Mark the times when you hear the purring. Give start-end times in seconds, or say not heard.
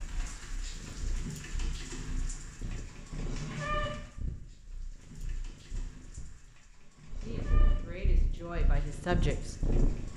0.2-10.1.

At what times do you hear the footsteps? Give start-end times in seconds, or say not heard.
not heard.